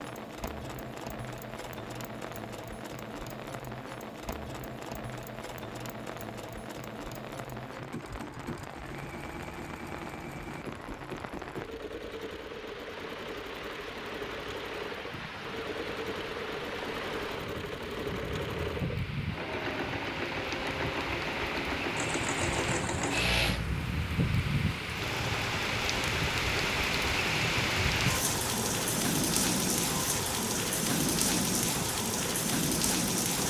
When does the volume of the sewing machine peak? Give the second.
23 s.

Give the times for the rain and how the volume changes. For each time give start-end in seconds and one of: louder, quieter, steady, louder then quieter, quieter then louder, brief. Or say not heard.
0.0-33.4 louder.